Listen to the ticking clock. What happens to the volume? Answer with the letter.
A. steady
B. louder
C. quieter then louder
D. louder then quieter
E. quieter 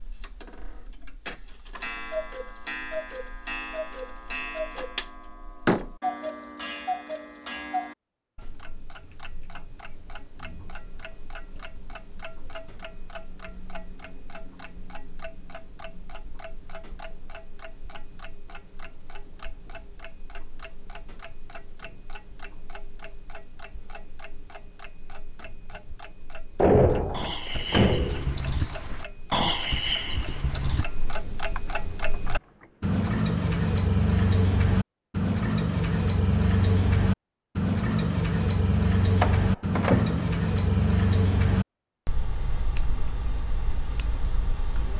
C.